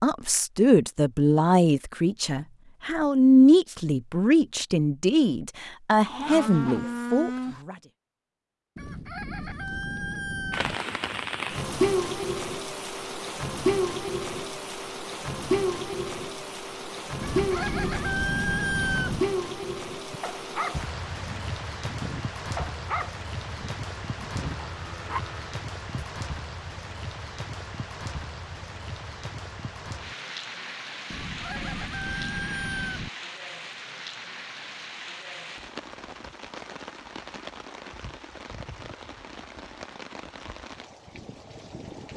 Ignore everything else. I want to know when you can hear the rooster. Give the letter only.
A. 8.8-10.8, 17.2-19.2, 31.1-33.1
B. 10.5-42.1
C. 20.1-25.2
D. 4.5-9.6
A.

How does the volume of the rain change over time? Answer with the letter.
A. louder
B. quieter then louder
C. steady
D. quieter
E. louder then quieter
D.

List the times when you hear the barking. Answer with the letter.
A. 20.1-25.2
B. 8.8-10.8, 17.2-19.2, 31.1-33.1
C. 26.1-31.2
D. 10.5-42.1
A.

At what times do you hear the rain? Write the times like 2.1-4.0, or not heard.
10.5-42.1.